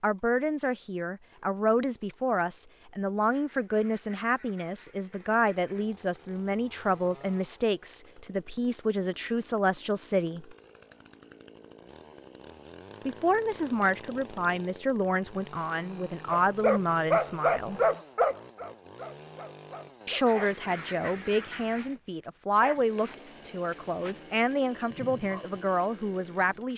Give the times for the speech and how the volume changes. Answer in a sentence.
You can hear the speech from 0.0 to 10.6 s, at a steady volume; from 13.1 to 17.8 s, at a steady volume; and from 20.1 to 26.7 s, at a steady volume.